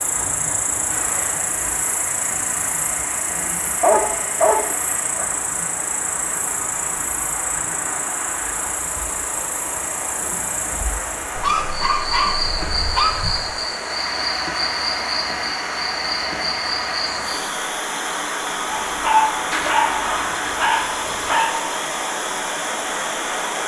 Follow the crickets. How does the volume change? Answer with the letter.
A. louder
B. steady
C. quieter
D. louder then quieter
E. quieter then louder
C.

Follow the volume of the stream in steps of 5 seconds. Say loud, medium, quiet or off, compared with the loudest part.
medium, medium, loud, loud, loud.